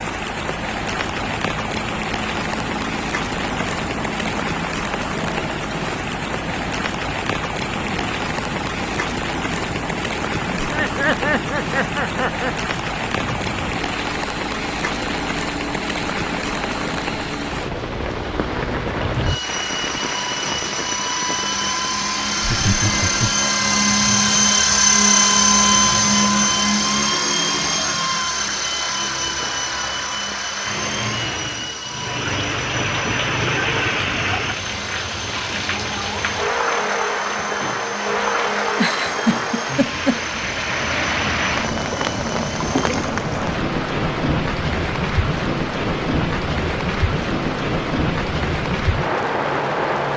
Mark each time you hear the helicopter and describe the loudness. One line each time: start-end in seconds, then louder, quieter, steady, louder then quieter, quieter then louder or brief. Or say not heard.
0.0-50.1 louder then quieter.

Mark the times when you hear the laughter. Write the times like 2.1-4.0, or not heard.
10.6-12.5, 22.4-23.4, 38.8-40.2.